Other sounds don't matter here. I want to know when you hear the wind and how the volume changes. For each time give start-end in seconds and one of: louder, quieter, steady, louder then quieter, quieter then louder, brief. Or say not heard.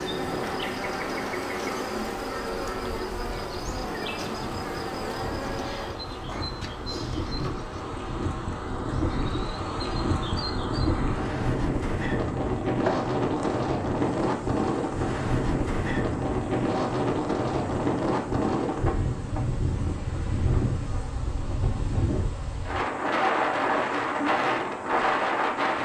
0.1-25.8 louder.